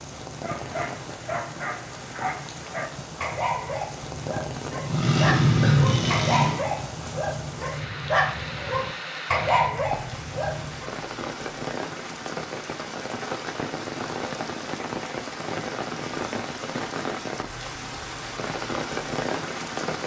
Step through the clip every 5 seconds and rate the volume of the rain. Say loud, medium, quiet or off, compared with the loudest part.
medium, medium, loud, loud.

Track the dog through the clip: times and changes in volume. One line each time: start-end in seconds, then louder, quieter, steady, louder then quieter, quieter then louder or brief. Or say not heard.
0.4-10.9 louder.